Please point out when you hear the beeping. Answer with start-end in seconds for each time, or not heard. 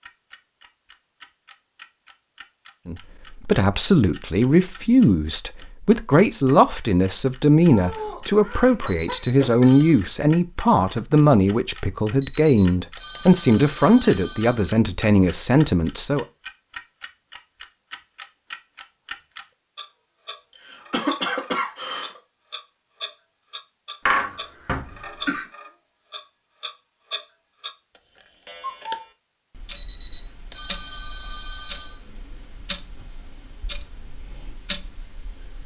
8.8-10.0, 12.2-14.7, 29.8-32.0.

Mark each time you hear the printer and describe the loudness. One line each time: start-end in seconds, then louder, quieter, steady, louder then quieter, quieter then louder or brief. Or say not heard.
not heard.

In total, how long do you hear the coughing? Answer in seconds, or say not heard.
5 s.